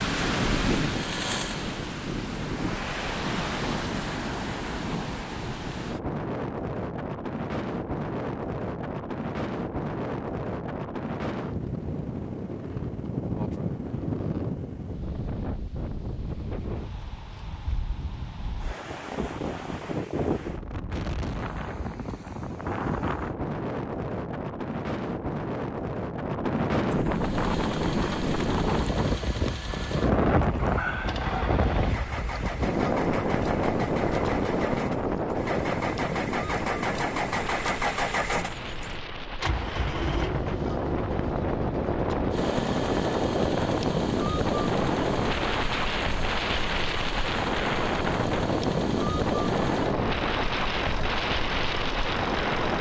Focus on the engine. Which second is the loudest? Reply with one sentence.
The volume of the engine peaks at 38 seconds.